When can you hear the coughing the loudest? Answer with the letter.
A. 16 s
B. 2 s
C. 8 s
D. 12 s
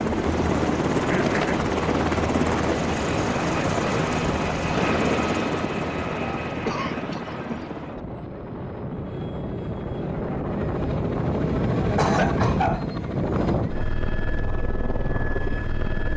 D.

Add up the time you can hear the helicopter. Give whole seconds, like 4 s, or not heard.
16 s.